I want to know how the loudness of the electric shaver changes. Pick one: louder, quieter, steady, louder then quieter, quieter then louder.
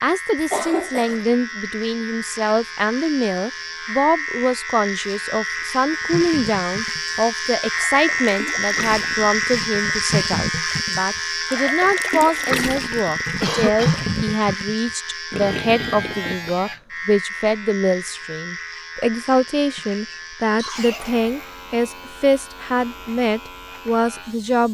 louder then quieter.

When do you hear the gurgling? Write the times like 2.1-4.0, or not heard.
6.0-16.6.